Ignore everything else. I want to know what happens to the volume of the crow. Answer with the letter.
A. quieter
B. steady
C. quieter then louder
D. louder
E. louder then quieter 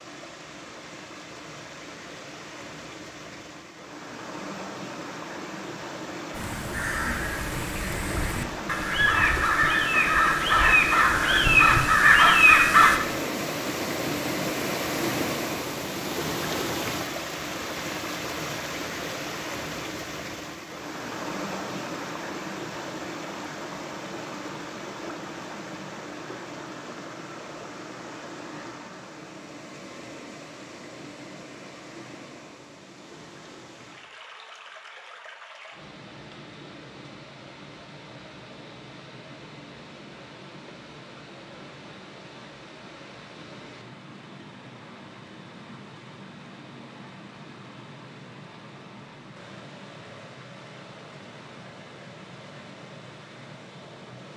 D.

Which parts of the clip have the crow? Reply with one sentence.
The crow can be heard from 6.3 to 13.0 s.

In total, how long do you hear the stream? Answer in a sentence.
The stream can be heard for 54 seconds in total.